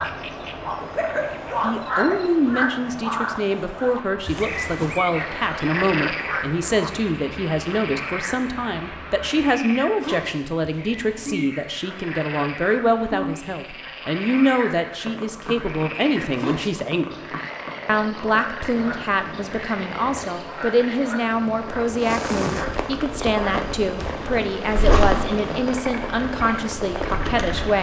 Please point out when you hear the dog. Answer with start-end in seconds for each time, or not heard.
0.8-2.1.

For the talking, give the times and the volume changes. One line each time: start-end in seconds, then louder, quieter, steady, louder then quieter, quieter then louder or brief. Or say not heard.
1.6-17.2 steady
17.9-27.7 steady.